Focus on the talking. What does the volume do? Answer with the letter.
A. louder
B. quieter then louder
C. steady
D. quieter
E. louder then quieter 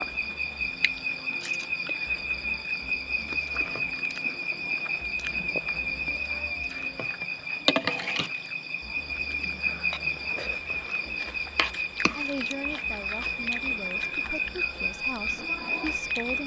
C.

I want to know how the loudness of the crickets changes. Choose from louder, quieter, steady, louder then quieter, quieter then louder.
steady.